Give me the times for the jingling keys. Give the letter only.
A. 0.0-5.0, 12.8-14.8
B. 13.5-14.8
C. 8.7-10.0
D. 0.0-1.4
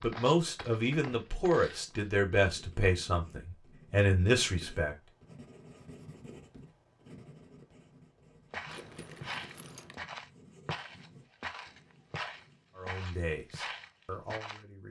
C.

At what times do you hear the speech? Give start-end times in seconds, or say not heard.
0.0-5.0, 12.8-14.8.